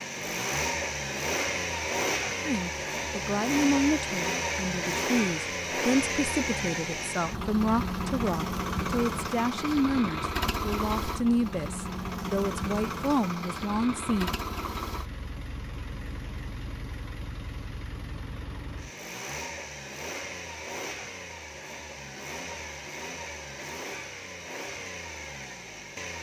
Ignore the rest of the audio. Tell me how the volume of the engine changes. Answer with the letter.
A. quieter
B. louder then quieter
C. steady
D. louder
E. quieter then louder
A.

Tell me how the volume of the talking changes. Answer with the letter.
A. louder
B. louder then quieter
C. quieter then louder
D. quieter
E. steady
E.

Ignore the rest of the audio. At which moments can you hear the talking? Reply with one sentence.
You can hear the talking from 2.5 to 14.3 s.